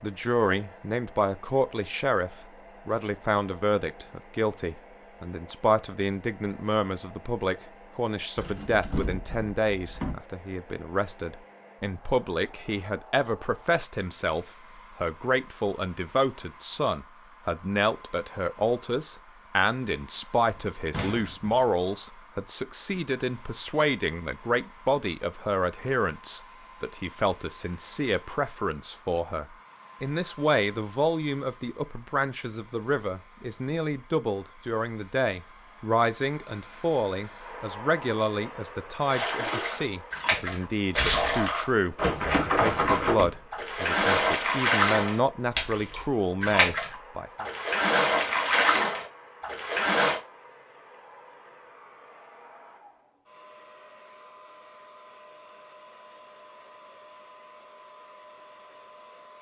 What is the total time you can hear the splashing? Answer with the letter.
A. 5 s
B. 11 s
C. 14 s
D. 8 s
B.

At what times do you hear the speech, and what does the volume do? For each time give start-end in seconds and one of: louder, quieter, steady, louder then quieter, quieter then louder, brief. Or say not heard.
0.0-47.5 steady.